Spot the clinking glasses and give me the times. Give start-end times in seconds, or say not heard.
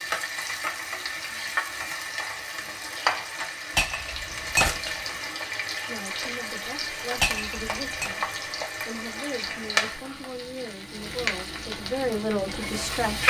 3.8-5.1, 7.2-8.1.